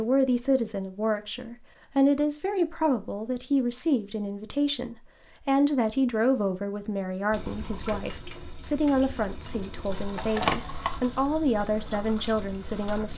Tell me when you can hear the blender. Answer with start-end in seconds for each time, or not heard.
not heard.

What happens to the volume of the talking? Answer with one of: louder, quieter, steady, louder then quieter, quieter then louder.
steady.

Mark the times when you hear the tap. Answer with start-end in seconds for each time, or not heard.
7.3-13.1.